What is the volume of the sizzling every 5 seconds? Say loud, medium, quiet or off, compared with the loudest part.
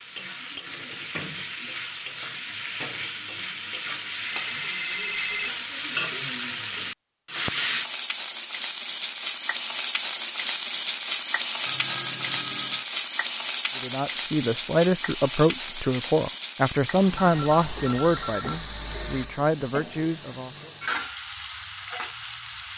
medium, loud, loud, medium, medium.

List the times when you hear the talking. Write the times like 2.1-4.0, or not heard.
13.8-20.7.